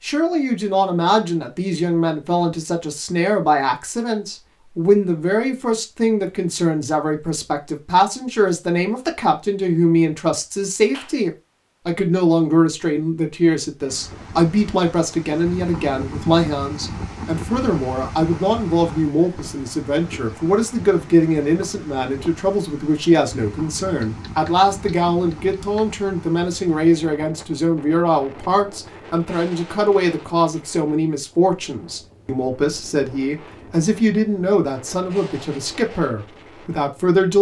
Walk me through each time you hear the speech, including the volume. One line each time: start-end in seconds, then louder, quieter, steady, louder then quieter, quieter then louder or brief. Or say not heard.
0.0-37.3 steady.